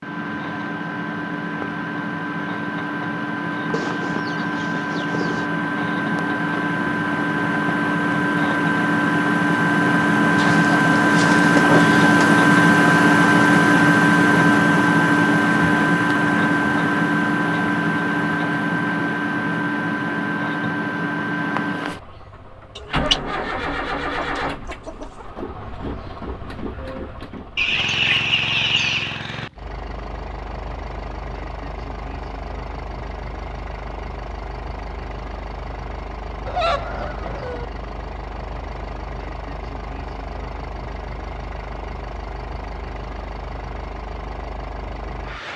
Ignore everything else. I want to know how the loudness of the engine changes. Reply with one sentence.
The volume of the engine goes up, then down.